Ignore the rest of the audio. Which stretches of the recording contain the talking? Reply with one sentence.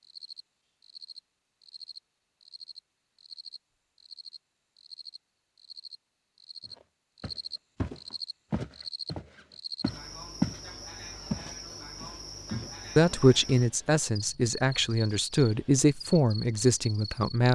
You can hear the talking from 12.9 to 17.5 s.